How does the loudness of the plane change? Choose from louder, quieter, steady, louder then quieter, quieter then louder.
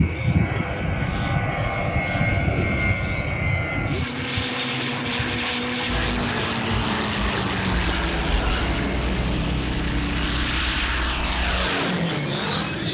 steady.